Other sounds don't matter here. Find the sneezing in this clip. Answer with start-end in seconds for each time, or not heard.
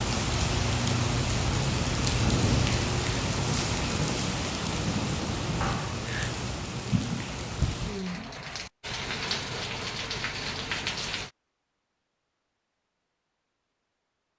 5.6-6.3.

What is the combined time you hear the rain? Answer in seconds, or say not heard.
11 s.